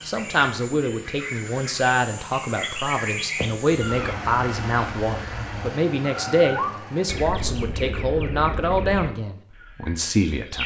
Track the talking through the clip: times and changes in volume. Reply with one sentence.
You can hear the talking from 0.1 to 10.6 s, at a steady volume.